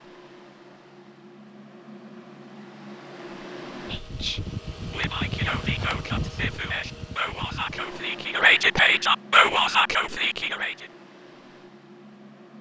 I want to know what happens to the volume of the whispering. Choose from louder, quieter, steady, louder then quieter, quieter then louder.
louder.